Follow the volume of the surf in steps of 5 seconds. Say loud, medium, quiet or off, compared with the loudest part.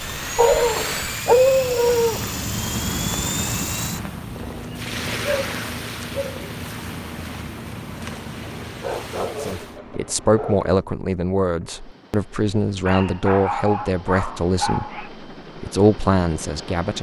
loud, loud, off, off.